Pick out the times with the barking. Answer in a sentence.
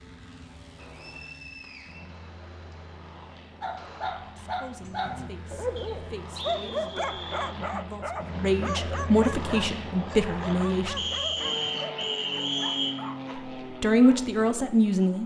The barking can be heard from 3.6 to 14.6 s.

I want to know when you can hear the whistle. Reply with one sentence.
The whistle can be heard from 0.8 to 2.8 s, from 5.8 to 7.5 s and from 10.9 to 12.9 s.